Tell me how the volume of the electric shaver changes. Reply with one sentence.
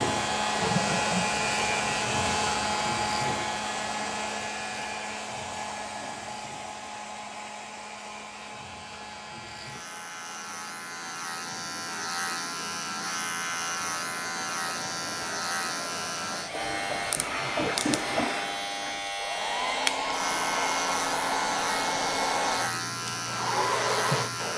The loudness of the electric shaver goes down, then up.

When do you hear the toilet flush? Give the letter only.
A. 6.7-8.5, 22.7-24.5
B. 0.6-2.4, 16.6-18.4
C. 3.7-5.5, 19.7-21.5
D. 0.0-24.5
B.